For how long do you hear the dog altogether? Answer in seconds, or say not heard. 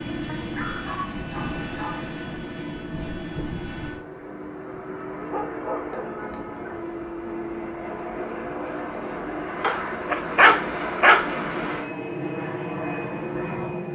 5 s.